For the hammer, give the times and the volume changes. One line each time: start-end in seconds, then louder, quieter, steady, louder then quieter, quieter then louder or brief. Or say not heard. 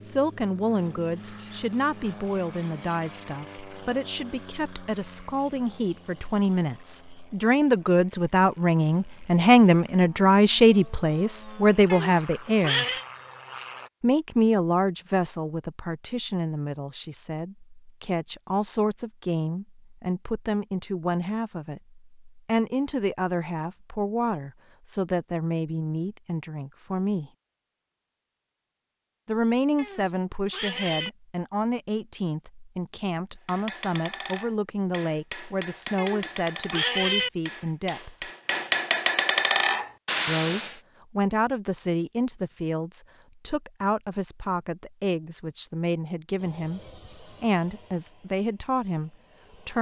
33.5-40.8 louder.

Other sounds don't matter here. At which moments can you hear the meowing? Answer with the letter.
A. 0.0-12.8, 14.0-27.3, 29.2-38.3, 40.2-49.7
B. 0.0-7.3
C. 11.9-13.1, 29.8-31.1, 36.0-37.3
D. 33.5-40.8
C.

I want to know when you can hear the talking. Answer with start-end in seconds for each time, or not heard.
0.0-12.8, 14.0-27.3, 29.2-38.3, 40.2-49.7.